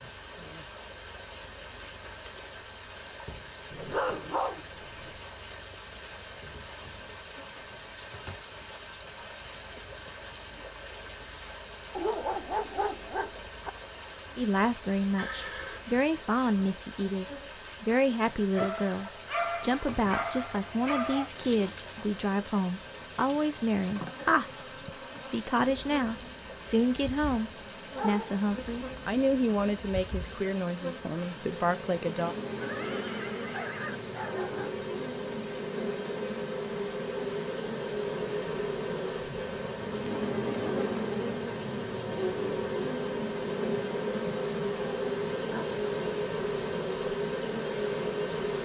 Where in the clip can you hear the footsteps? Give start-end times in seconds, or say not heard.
not heard.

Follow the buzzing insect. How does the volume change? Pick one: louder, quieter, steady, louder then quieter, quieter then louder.
louder.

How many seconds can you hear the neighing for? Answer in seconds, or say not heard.
2 s.